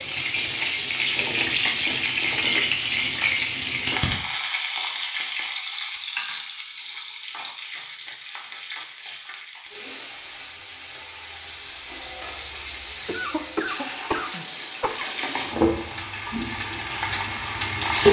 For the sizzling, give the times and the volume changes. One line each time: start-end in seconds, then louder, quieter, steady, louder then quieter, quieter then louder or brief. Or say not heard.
0.0-18.0 quieter then louder.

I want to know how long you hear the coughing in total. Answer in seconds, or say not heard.
2 s.